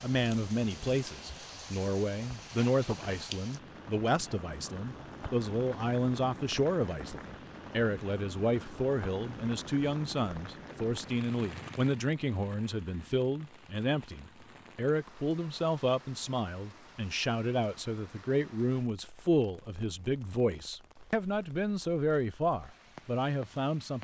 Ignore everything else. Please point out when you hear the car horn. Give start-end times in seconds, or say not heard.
not heard.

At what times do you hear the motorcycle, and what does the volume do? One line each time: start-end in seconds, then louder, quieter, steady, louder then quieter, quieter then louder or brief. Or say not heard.
not heard.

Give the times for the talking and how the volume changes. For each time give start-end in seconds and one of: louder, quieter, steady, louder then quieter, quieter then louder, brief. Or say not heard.
0.0-23.9 steady.